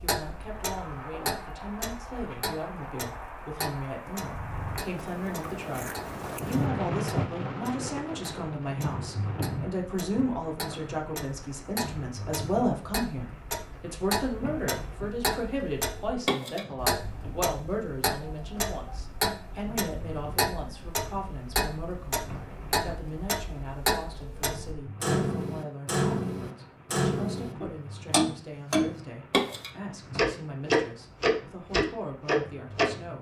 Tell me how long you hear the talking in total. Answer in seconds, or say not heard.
33 s.